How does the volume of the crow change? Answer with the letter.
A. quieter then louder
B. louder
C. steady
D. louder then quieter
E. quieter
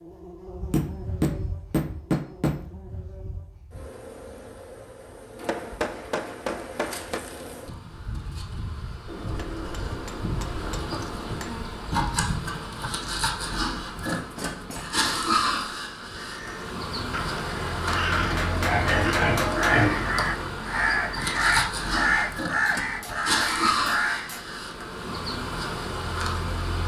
B.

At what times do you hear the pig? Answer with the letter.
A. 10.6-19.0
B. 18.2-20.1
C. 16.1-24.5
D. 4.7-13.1
B.